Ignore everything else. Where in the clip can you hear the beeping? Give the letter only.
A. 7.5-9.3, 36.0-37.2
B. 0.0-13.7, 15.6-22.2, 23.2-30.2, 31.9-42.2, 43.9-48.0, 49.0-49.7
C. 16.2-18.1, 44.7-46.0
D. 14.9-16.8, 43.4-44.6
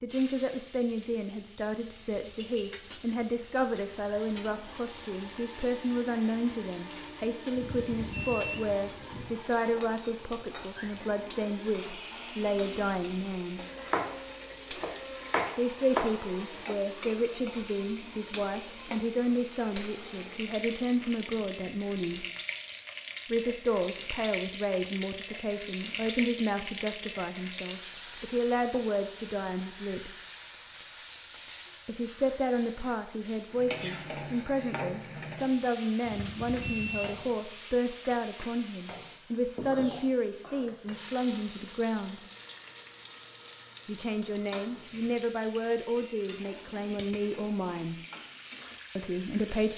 A.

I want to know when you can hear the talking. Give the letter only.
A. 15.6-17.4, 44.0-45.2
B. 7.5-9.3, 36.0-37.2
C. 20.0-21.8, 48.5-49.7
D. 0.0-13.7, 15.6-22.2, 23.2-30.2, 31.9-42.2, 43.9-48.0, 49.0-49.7
D.